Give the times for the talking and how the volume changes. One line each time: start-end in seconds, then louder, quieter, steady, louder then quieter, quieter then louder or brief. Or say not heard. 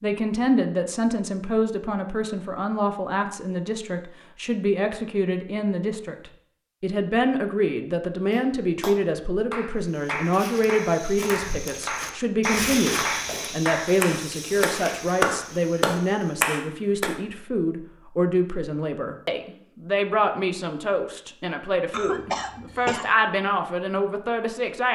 0.0-24.9 steady.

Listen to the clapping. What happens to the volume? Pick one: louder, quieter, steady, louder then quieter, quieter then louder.
louder.